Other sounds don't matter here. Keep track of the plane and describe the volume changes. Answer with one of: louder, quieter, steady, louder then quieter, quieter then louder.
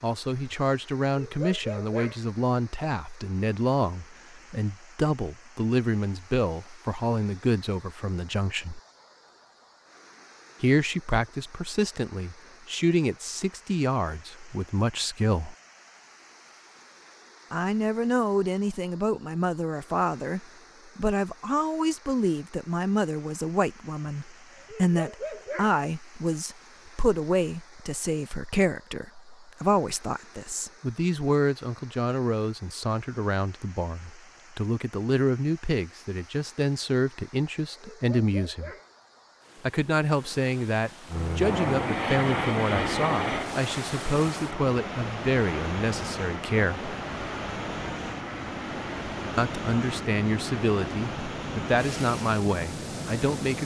quieter.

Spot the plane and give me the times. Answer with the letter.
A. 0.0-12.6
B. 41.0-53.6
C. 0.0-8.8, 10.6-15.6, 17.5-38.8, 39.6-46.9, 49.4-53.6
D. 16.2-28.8
B.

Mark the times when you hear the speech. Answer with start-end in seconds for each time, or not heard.
0.0-8.8, 10.6-15.6, 17.5-38.8, 39.6-46.9, 49.4-53.6.